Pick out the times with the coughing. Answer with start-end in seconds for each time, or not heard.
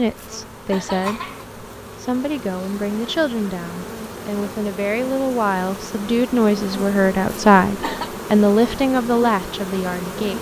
0.1-1.4, 7.2-8.1.